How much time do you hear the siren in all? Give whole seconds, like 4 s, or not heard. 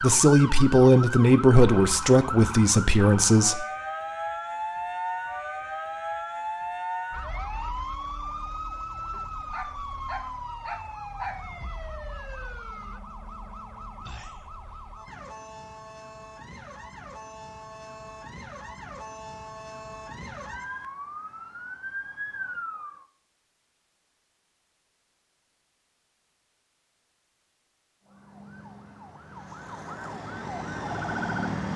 27 s.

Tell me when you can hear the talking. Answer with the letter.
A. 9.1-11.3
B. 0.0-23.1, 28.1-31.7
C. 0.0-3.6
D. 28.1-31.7
C.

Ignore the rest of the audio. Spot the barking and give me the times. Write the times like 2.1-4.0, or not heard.
9.1-11.3.